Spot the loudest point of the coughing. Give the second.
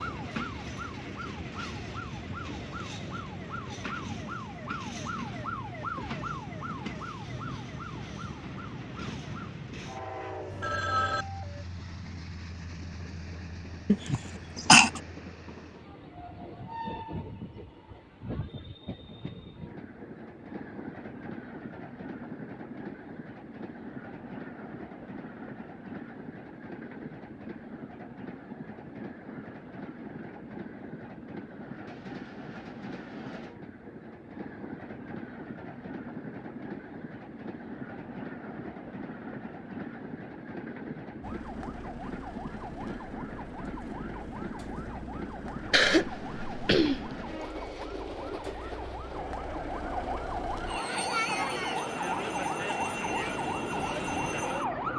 15 s.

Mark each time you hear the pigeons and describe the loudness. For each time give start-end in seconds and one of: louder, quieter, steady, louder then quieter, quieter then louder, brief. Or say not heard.
not heard.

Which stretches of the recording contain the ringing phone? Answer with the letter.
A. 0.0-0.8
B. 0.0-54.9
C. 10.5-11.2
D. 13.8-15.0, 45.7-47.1
C.